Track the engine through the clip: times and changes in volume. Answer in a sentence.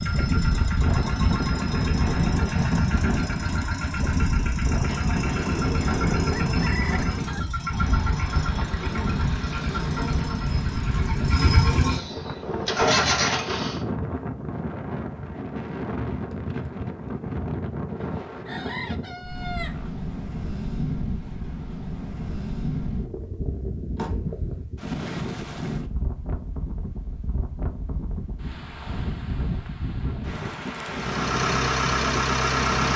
The engine can be heard from 0.0 to 13.8 s, getting louder; and briefly from 30.9 to 32.9 s.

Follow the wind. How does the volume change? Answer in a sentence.
The loudness of the wind goes down.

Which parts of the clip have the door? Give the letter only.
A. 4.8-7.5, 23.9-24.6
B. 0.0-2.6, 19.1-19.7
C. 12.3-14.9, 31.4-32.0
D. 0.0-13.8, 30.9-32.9
A.